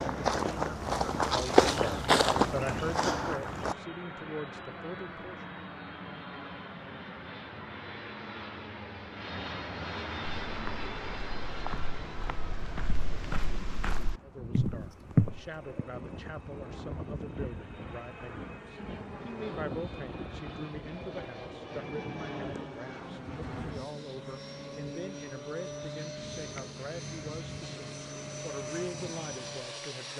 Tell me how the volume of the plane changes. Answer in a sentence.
The volume of the plane stays about the same.